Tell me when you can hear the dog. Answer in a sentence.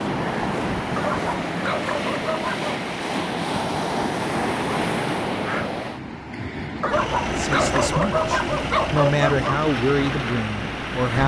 You can hear the dog from 0.9 to 2.8 s and from 6.8 to 9.7 s.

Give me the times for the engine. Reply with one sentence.
You can hear the engine from 6.9 to 11.2 s.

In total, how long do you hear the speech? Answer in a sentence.
The speech can be heard for 4 seconds in total.